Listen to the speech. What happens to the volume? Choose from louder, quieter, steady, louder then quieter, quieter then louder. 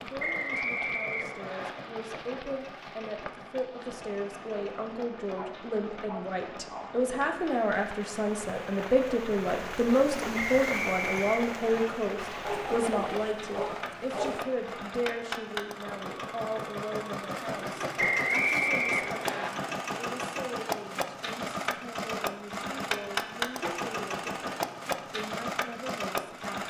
louder then quieter.